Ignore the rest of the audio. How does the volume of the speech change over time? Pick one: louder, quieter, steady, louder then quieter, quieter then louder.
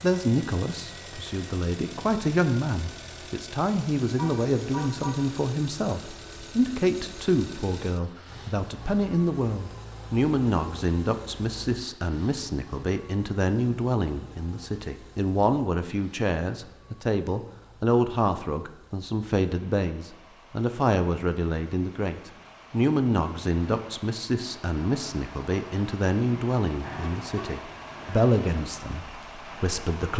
steady.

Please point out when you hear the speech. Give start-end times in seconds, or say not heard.
0.0-30.1.